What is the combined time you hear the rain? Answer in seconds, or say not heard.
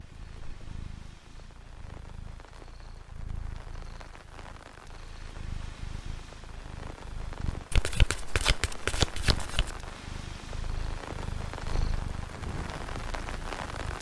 14 s.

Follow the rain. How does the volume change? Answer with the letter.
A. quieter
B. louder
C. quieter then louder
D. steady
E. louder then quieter
B.